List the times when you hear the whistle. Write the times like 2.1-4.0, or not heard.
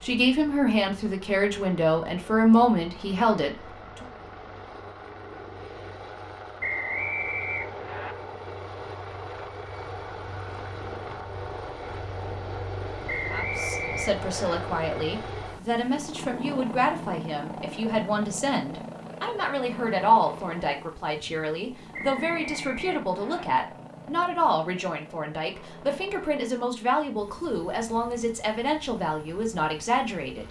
6.6-8.2, 13.1-14.6, 21.9-23.4.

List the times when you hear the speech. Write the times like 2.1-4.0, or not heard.
0.0-4.0, 13.3-30.4.